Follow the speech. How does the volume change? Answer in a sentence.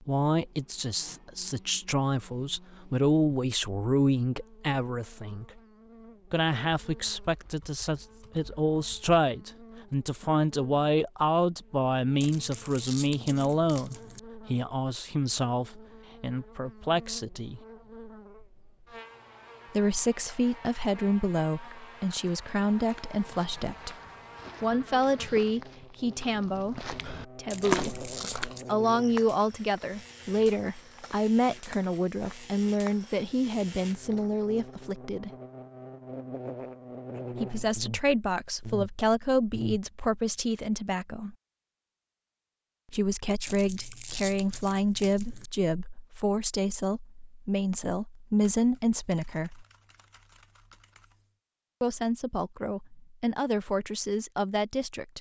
The loudness of the speech stays about the same.